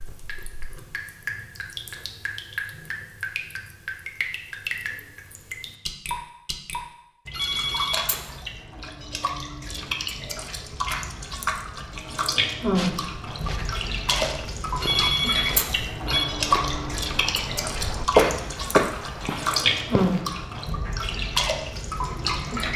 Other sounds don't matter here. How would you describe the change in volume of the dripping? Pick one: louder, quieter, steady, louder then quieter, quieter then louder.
louder.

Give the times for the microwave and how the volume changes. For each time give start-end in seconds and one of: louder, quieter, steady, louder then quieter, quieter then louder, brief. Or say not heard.
not heard.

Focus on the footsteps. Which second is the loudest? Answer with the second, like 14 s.
18 s.